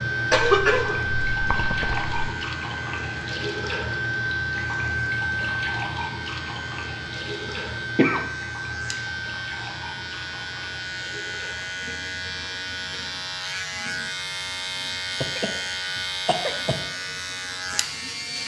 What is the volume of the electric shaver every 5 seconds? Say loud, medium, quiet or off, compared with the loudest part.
medium, medium, loud, loud.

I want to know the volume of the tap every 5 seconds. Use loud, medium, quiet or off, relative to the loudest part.
loud, loud, quiet, quiet.